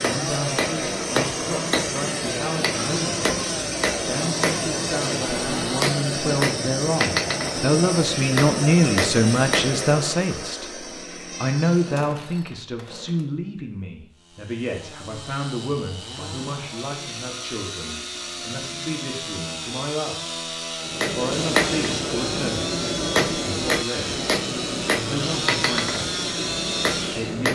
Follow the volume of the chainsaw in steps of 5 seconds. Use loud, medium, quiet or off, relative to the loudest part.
loud, loud, medium, medium, loud, loud.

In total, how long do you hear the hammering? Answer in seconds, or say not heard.
17 s.